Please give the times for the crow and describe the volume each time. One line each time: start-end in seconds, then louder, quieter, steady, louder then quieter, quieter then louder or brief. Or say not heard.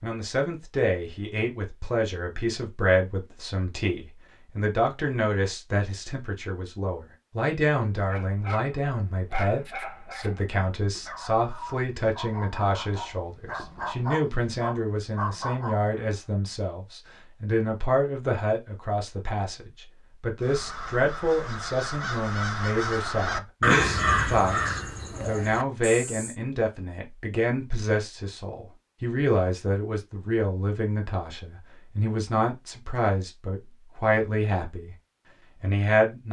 20.4-26.4 louder then quieter.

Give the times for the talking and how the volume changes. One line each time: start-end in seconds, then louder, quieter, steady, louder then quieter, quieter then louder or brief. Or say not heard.
0.0-35.0 steady
35.6-36.2 brief.